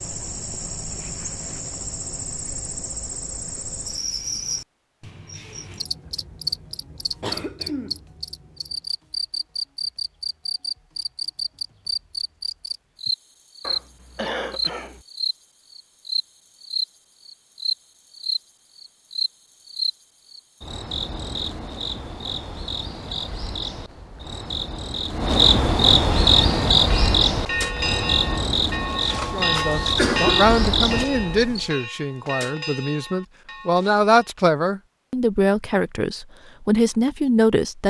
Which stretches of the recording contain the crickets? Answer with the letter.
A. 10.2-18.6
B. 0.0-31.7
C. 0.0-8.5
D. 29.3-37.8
B.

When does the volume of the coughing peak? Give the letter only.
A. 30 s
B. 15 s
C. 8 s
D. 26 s
A.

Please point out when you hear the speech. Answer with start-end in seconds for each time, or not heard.
29.3-37.8.